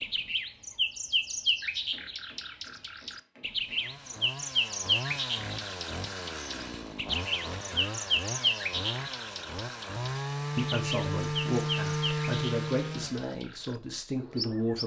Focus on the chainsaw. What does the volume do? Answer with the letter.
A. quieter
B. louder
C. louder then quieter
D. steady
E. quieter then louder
B.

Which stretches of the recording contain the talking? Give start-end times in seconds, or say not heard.
10.6-14.8.